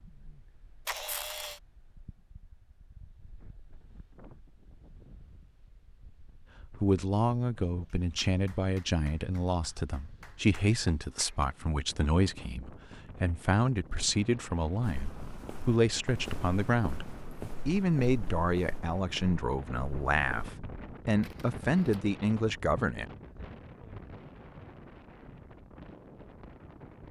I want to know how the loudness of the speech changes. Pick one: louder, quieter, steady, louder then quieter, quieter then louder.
steady.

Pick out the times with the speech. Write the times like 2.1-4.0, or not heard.
6.8-23.1.